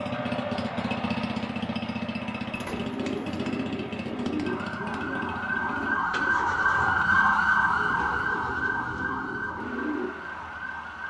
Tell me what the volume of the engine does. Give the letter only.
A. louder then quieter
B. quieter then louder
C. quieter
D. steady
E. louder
C.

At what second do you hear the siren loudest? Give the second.
7 s.